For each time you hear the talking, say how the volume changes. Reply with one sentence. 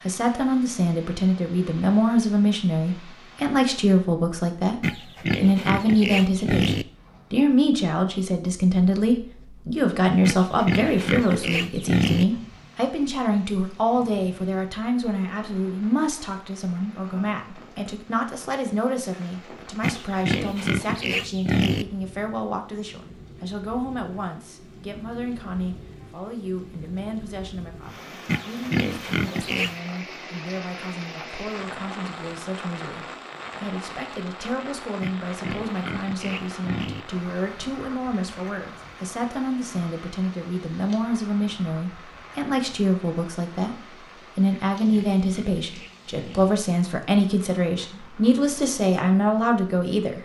You can hear the talking from 0.1 to 50.2 s, getting quieter then louder.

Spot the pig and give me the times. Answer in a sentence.
You can hear the pig from 4.8 to 6.8 s, from 10.2 to 12.2 s, from 19.8 to 21.9 s, from 28.2 to 29.8 s, from 35.0 to 37.0 s and from 44.5 to 46.5 s.